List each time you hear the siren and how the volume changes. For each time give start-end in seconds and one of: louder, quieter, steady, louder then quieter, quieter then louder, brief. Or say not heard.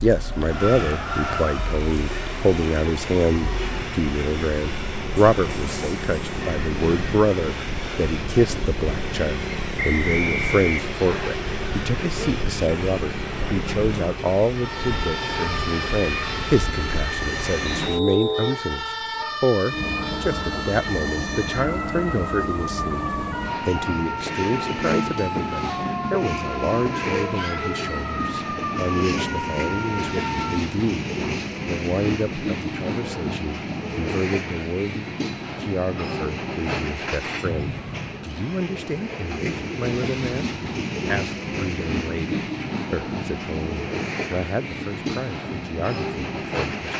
0.0-30.6 louder.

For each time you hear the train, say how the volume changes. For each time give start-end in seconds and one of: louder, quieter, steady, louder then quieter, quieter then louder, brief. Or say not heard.
0.0-46.9 steady.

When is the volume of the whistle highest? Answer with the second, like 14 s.
10 s.